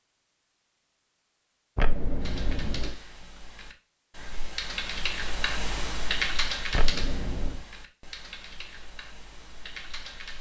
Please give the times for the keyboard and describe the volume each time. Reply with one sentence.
You can hear the keyboard from 2.2 to 10.3 s, getting louder then quieter.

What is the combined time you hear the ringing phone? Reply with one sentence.
The ringing phone can be heard for 2 seconds in total.